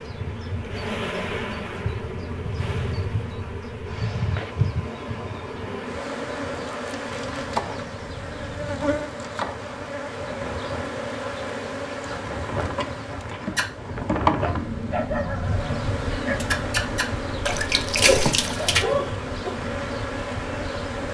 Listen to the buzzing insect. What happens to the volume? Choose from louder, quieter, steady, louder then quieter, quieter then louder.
steady.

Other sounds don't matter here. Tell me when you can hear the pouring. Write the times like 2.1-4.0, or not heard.
17.4-18.9.